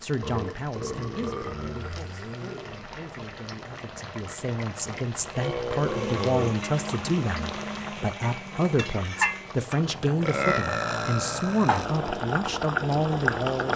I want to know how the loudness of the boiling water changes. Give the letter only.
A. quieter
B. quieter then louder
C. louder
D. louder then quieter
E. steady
C.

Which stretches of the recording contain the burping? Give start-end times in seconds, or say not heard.
0.2-2.8, 5.3-6.5, 10.2-11.9.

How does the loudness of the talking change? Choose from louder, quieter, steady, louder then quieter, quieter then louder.
louder.